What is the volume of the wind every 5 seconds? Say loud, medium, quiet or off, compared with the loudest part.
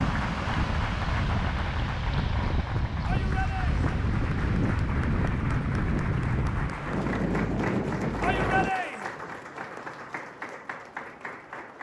loud, loud, off.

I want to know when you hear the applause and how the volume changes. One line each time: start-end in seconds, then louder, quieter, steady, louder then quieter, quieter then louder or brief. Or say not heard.
0.0-11.7 steady.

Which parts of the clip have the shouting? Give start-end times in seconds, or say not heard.
3.0-3.8, 8.2-9.1.